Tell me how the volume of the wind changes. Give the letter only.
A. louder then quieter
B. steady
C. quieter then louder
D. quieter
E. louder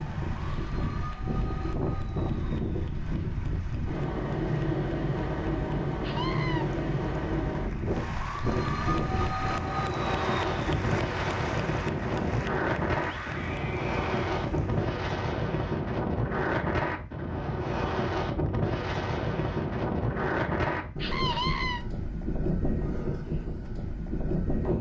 B.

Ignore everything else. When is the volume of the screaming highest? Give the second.
21 s.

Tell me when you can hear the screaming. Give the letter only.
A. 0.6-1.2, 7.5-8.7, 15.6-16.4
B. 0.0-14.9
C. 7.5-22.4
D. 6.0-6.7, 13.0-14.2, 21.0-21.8
D.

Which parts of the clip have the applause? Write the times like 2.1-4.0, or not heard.
0.0-14.9.